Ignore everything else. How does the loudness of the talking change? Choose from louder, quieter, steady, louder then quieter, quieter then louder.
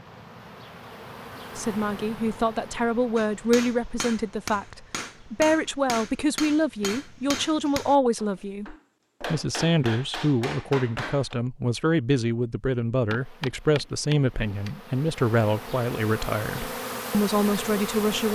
steady.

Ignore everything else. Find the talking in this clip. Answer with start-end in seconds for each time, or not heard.
1.6-18.3.